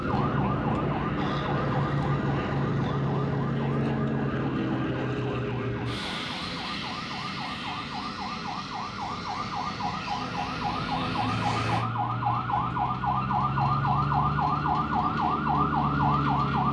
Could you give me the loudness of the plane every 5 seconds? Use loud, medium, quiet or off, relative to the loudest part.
loud, medium, medium, off.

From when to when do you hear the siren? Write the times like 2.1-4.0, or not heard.
0.0-16.6.